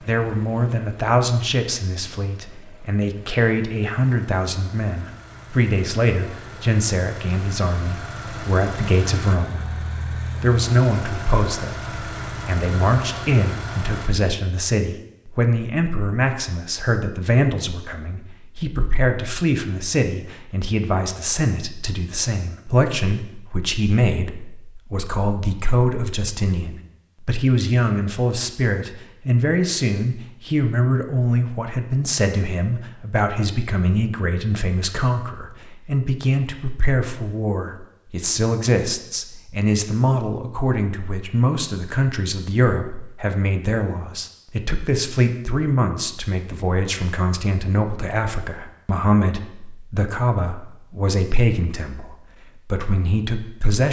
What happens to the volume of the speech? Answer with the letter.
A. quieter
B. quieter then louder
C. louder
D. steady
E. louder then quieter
D.